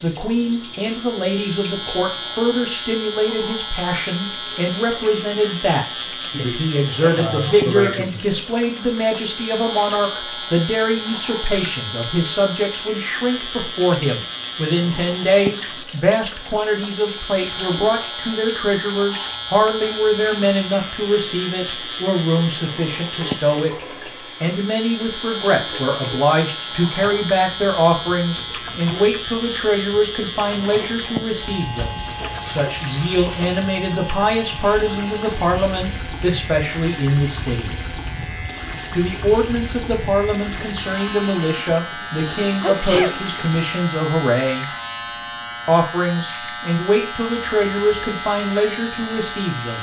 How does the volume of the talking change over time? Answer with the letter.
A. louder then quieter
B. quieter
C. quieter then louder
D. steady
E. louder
D.